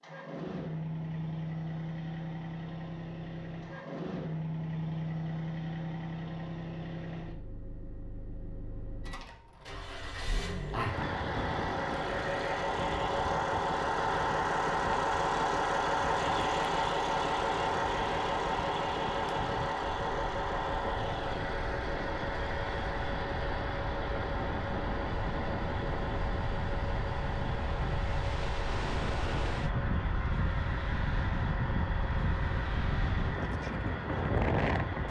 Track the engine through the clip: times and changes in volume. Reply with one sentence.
The engine can be heard from 0.0 to 35.0 s, getting louder then quieter.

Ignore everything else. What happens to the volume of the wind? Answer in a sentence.
The volume of the wind goes up.